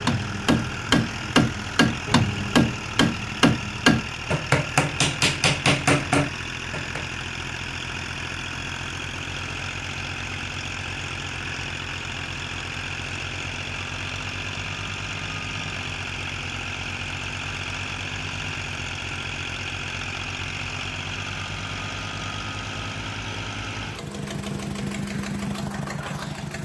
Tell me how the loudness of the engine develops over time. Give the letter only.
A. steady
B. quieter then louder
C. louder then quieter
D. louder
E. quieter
A.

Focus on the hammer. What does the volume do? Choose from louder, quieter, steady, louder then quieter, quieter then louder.
steady.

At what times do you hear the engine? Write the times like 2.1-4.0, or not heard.
0.0-26.5.